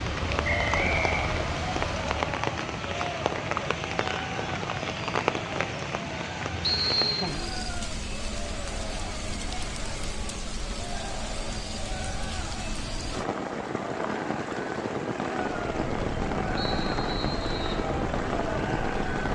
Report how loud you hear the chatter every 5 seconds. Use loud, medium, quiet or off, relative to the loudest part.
loud, medium, medium, loud.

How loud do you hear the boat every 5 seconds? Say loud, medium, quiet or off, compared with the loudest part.
loud, off, off, loud.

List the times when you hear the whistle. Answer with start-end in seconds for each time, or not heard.
0.4-1.4, 6.6-7.2, 16.6-17.9.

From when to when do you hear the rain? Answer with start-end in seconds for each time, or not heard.
0.0-19.2.